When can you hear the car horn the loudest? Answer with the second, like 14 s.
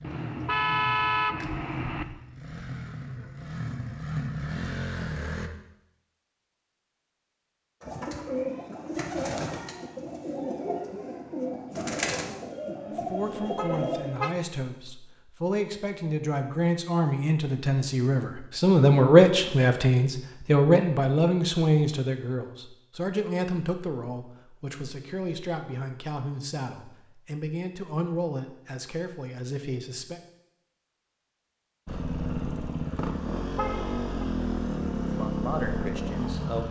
1 s.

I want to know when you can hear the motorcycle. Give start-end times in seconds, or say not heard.
0.0-5.5, 31.9-36.6.